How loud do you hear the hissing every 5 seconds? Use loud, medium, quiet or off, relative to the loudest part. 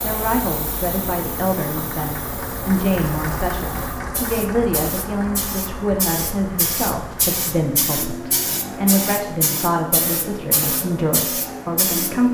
medium, loud, loud.